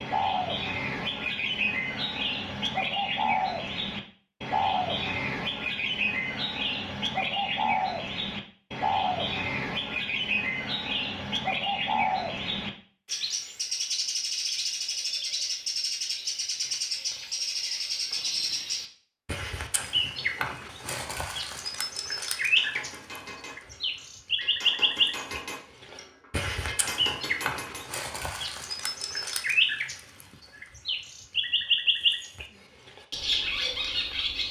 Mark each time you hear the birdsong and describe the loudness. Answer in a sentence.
You can hear the birdsong from 0.0 to 34.4 s, at a steady volume.